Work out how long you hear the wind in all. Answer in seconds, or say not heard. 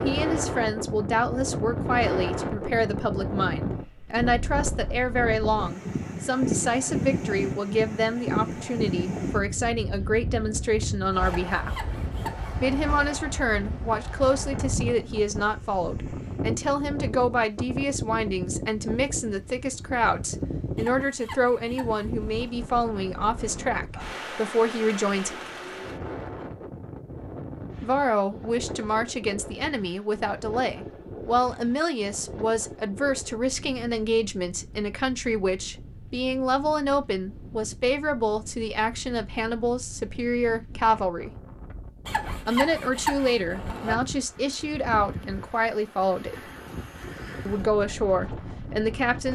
49 s.